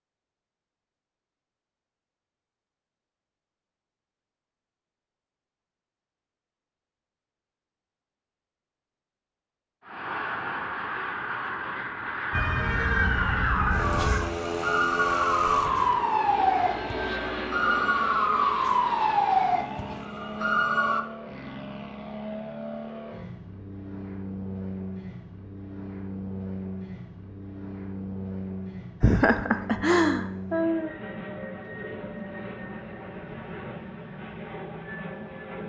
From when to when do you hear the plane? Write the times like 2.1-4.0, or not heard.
9.8-35.6.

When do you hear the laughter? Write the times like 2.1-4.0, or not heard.
29.0-30.9.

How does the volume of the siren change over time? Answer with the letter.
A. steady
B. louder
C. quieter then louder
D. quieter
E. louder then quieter
A.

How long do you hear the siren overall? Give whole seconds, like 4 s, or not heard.
9 s.